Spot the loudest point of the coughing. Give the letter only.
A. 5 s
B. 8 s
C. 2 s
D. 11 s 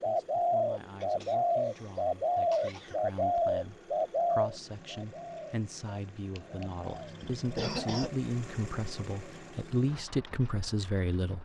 B.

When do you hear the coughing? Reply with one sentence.
The coughing can be heard from 1.0 to 3.0 s and from 7.2 to 8.1 s.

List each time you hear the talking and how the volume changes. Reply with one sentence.
The talking can be heard from 0.1 to 11.4 s, getting louder.